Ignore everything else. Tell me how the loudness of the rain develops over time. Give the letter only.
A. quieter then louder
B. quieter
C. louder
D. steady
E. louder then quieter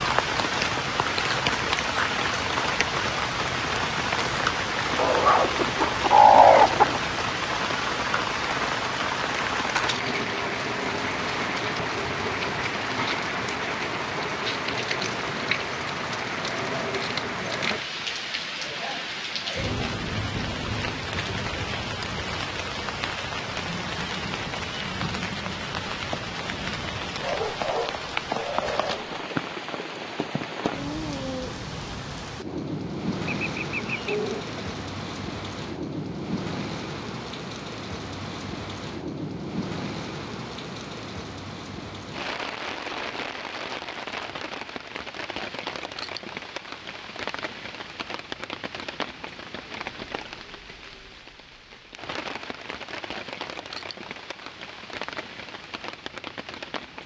B.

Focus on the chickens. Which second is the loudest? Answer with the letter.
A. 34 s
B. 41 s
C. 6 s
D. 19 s
C.